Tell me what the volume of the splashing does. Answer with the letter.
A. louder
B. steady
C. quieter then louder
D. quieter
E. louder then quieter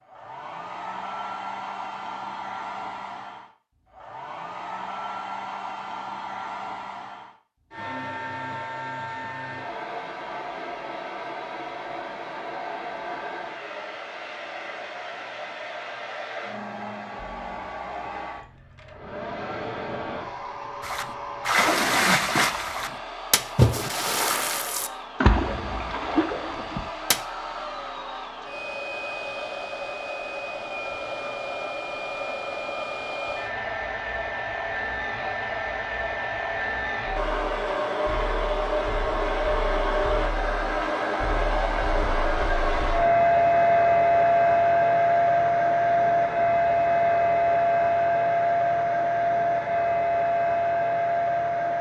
D.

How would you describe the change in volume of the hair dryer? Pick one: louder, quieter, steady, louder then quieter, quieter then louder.
louder.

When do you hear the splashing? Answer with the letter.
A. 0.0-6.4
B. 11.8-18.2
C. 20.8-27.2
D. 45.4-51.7
C.